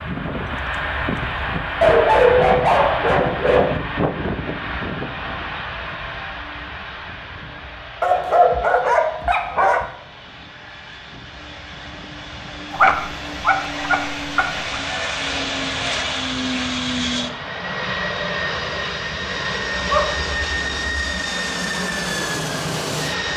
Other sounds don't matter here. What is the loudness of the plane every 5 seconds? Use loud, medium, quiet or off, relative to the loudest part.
loud, medium, medium, loud, loud.